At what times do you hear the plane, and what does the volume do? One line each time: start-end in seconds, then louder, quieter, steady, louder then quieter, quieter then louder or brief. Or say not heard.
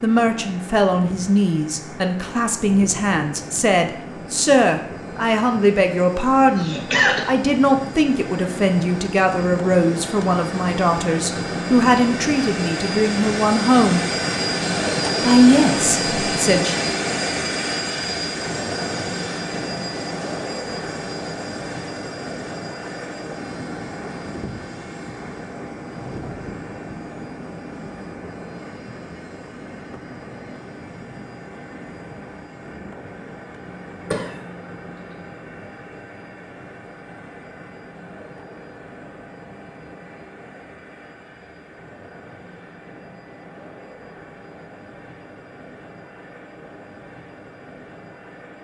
0.0-48.6 louder then quieter.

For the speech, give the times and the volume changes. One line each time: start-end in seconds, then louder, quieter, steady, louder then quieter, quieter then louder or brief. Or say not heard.
0.0-14.1 steady
15.2-16.8 brief.